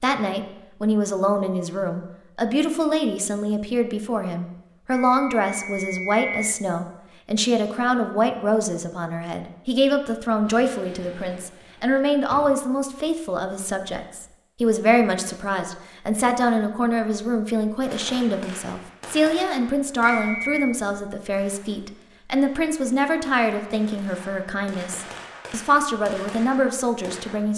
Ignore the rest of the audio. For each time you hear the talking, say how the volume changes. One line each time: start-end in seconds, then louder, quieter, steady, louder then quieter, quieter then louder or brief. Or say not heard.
0.0-27.5 steady.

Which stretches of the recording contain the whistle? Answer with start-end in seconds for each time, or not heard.
4.9-6.6, 20.0-20.8.